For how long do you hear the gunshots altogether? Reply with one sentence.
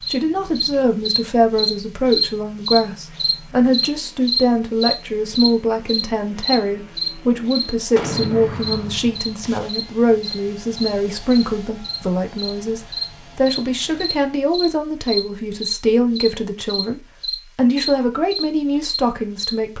You can hear the gunshots for 2 seconds altogether.